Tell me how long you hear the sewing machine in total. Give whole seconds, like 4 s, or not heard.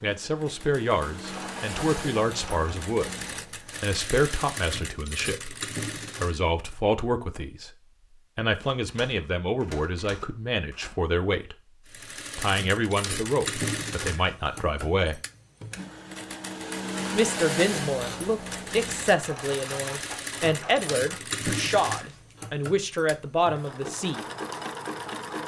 20 s.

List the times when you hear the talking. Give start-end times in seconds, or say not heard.
0.0-3.1, 3.8-5.5, 6.2-7.7, 8.3-11.6, 12.3-15.2, 17.1-24.2.